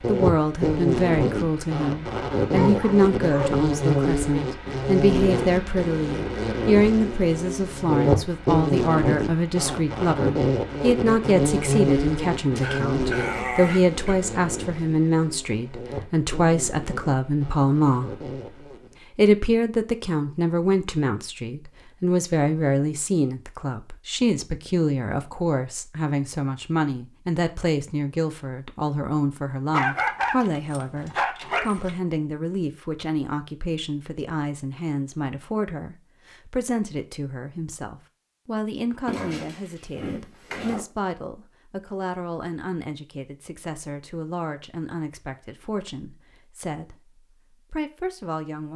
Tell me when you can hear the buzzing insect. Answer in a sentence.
The buzzing insect can be heard from 0.0 to 18.9 s.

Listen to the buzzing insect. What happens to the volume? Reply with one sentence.
The volume of the buzzing insect goes down.